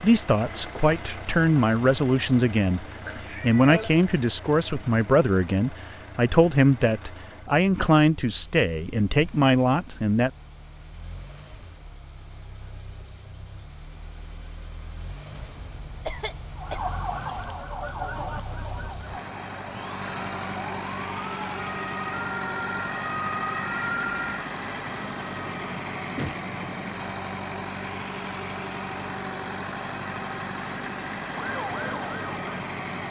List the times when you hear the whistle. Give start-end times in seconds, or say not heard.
not heard.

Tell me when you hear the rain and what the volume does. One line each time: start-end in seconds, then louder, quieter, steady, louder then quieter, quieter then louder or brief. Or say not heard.
not heard.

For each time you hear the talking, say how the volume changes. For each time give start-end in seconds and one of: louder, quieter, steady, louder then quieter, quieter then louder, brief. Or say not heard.
0.0-10.3 steady.